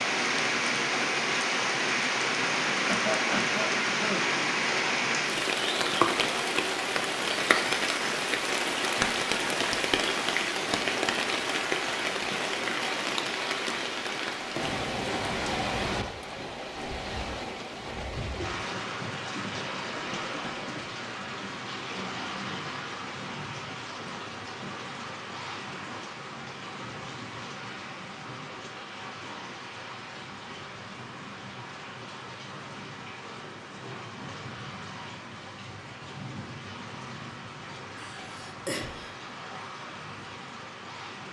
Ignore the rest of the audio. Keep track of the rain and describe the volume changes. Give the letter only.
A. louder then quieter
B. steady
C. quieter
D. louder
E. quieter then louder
C.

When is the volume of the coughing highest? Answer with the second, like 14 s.
3 s.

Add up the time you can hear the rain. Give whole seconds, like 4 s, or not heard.
41 s.